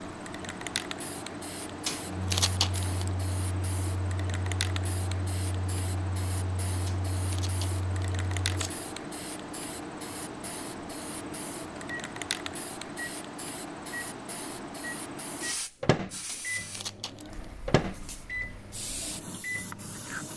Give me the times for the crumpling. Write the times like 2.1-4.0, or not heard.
1.9-3.1, 6.8-8.8, 16.2-17.4.